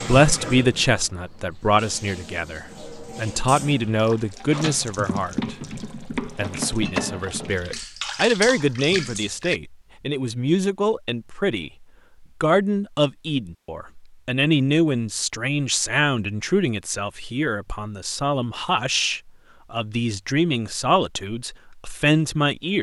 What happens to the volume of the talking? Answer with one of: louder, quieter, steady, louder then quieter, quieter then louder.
steady.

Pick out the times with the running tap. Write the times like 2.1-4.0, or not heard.
0.0-9.6.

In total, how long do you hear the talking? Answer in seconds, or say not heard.
23 s.